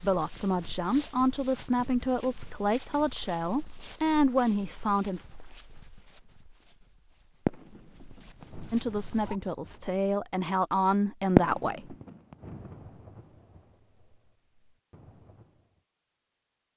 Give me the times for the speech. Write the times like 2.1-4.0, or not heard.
0.0-5.2, 8.7-11.9.